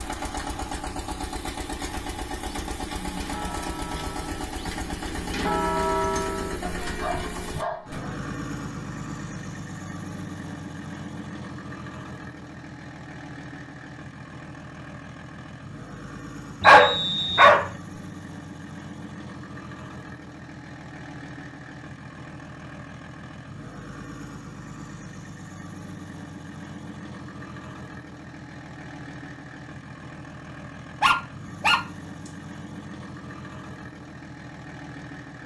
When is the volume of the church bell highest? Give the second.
6 s.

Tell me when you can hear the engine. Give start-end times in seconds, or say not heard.
0.0-35.4.